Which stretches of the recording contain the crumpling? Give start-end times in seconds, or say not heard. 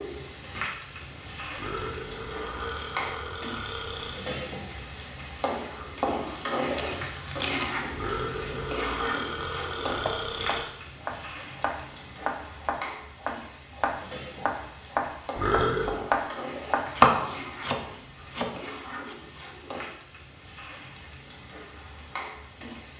6.8-7.7.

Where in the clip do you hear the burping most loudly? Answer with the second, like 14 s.
16 s.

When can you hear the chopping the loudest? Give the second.
17 s.